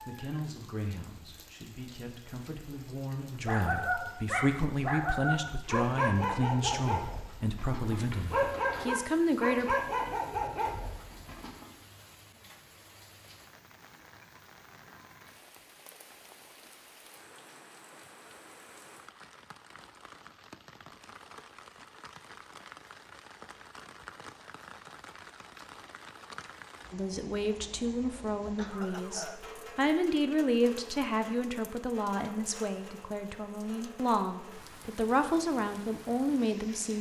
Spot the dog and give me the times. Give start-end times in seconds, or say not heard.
3.5-11.7.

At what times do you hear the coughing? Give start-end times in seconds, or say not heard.
28.6-29.4.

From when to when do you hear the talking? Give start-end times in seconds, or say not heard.
0.0-9.8, 26.9-36.9.